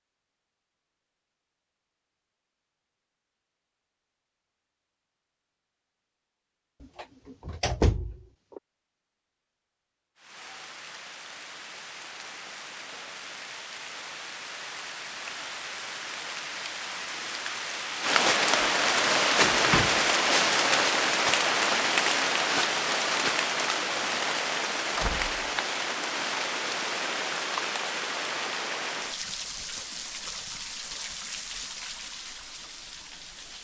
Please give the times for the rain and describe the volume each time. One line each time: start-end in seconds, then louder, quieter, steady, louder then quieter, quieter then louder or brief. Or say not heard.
10.2-33.5 louder then quieter.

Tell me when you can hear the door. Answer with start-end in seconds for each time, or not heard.
6.8-8.6, 19.5-20.0, 24.9-25.4.